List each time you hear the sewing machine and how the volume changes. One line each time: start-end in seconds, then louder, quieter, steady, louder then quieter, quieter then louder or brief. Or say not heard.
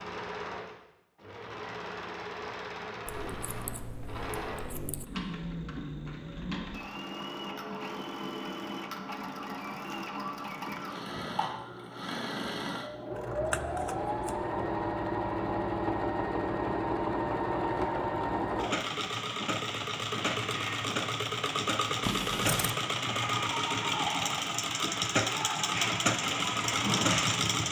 0.0-27.6 louder.